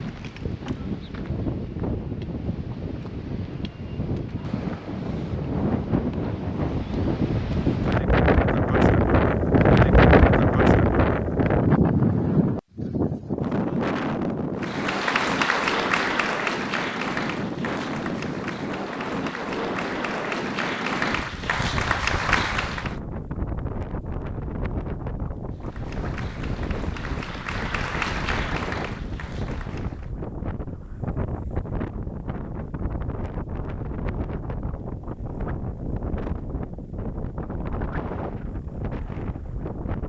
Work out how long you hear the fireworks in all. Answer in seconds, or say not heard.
not heard.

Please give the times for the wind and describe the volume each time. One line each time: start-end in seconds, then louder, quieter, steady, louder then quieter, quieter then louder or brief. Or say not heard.
0.0-40.0 louder then quieter.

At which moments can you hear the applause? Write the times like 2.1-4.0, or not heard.
14.6-22.9, 25.5-30.1.